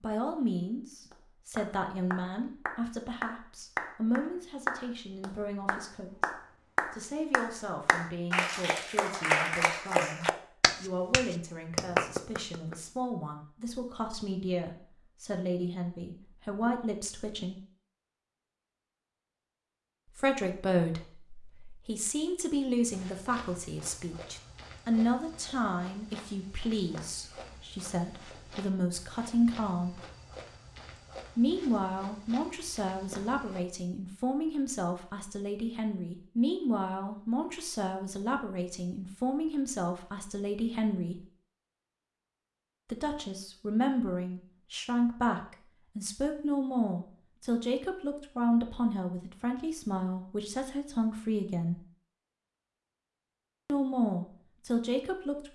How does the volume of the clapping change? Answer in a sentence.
The loudness of the clapping goes up.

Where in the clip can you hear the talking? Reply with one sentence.
The talking can be heard from 0.0 to 17.6 s, from 20.1 to 30.0 s, from 31.4 to 41.2 s, from 42.9 to 51.8 s and from 53.6 to 55.5 s.